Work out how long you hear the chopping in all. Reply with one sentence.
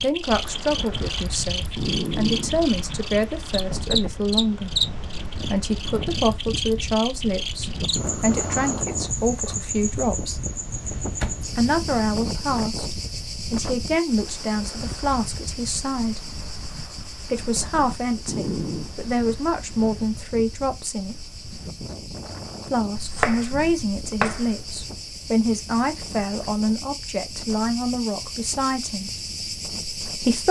The chopping can be heard for 2 seconds in total.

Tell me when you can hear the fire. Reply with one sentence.
You can't hear the fire here.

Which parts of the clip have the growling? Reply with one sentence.
You can hear the growling from 1.7 to 2.6 s and from 18.2 to 18.9 s.